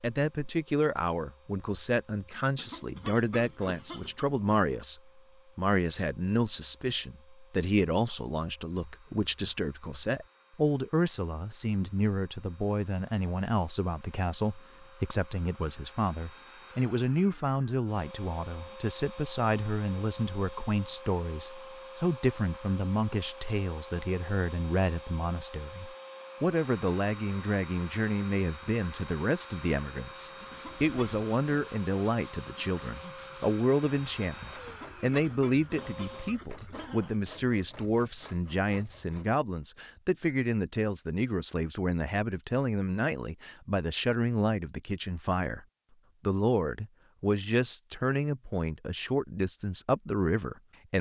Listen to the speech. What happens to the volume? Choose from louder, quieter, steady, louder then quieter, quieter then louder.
steady.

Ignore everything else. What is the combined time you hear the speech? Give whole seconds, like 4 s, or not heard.
50 s.